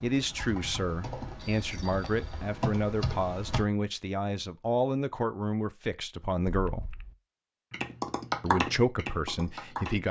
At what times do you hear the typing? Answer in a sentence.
You can hear the typing from 0.0 to 3.6 s and from 7.7 to 10.0 s.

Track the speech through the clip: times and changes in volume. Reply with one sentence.
The speech can be heard from 0.0 to 6.9 s, at a steady volume; and briefly from 8.4 to 10.0 s.